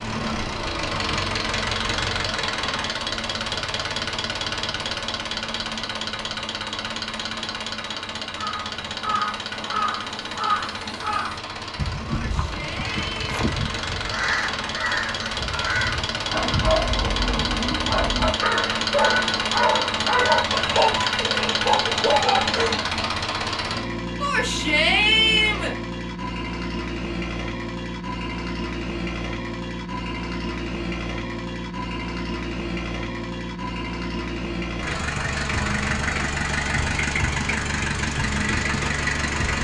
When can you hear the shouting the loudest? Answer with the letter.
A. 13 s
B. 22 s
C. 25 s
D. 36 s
C.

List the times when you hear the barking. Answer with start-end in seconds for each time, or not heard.
16.3-22.8.